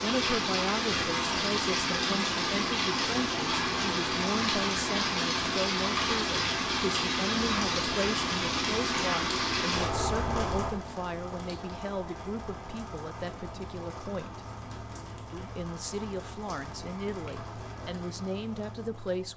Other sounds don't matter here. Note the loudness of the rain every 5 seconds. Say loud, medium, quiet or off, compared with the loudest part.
loud, loud, medium, quiet.